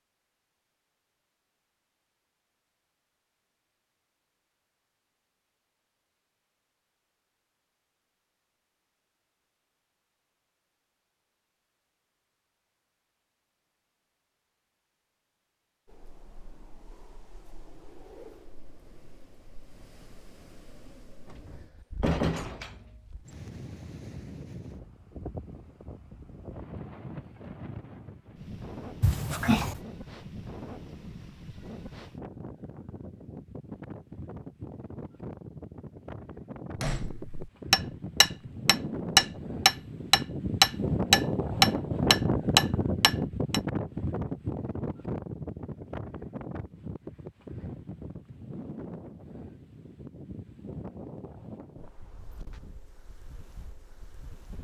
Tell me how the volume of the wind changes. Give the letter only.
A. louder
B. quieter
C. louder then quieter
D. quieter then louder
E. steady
C.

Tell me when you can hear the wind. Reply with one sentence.
The wind can be heard from 15.8 to 54.5 s.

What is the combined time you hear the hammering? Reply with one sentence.
You can hear the hammering for 7 seconds altogether.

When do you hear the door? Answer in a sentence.
You can hear the door from 21.2 to 23.0 s and from 29.0 to 29.8 s.